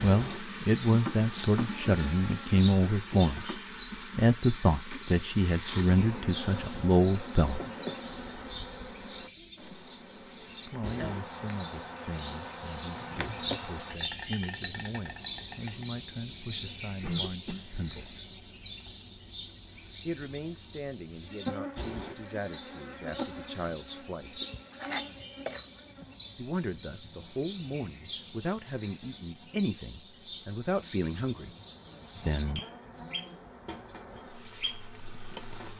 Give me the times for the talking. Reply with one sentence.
The talking can be heard from 0.0 to 7.6 s, from 10.7 to 18.2 s, from 20.1 to 24.4 s, from 26.4 to 31.5 s and from 32.2 to 32.6 s.